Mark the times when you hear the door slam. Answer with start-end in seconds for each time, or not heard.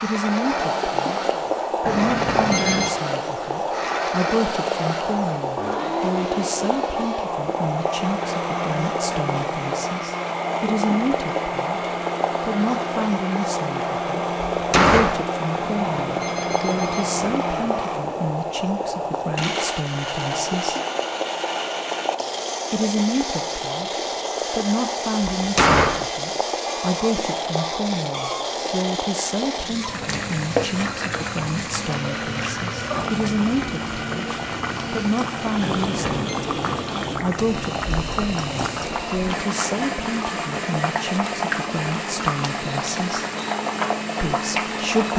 14.4-15.2, 25.4-26.1.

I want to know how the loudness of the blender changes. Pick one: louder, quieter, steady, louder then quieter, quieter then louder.
steady.